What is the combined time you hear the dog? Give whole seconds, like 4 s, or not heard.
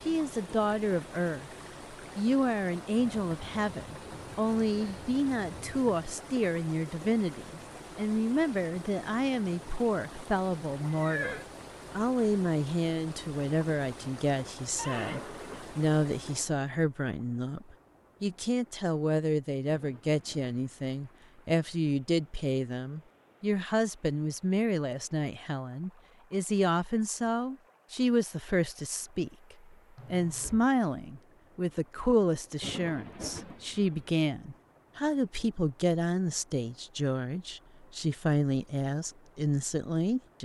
not heard.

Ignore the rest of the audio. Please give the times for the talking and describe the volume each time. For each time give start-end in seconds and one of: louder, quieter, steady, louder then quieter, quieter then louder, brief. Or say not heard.
0.1-1.5 brief
2.1-40.4 steady.